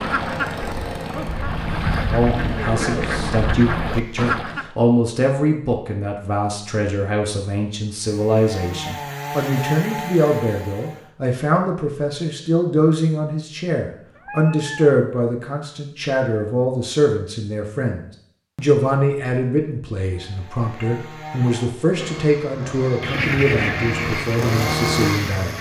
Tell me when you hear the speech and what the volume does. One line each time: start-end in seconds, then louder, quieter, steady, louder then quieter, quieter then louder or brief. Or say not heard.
2.1-25.5 steady.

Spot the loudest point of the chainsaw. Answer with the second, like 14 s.
25 s.